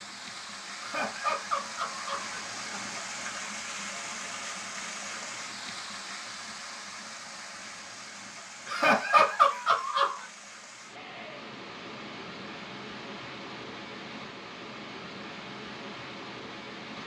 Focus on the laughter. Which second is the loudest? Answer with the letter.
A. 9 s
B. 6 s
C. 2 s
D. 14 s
A.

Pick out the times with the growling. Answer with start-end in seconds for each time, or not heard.
not heard.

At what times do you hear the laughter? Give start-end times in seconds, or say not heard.
0.8-3.0, 8.7-10.2.